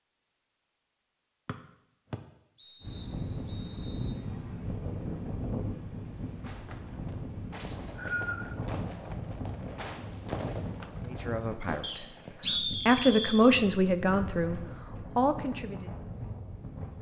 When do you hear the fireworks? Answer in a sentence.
The fireworks can be heard from 6.2 to 12.4 s.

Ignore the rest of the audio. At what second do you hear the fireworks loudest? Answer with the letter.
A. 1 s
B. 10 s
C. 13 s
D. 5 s
B.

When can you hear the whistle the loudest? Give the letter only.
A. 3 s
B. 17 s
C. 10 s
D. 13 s
D.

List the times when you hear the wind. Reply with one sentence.
You can hear the wind from 2.8 to 16.9 s.